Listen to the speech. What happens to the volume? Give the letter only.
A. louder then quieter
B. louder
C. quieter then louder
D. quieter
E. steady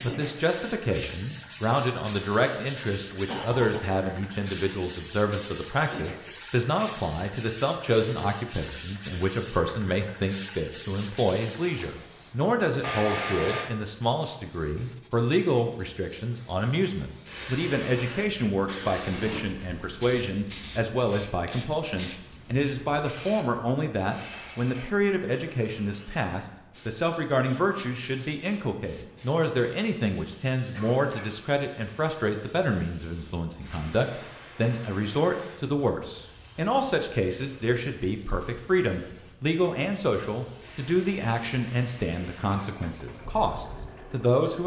E.